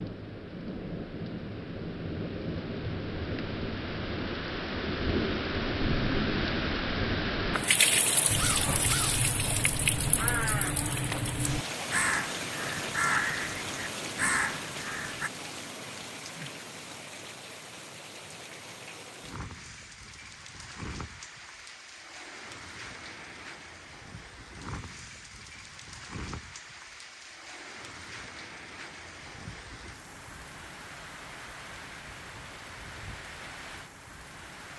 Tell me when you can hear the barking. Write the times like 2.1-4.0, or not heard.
not heard.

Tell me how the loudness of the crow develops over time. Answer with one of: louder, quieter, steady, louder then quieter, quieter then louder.
steady.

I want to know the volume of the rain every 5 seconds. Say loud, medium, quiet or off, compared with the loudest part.
medium, loud, medium, quiet, quiet, quiet, quiet.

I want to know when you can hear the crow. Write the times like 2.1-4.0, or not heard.
8.2-15.3.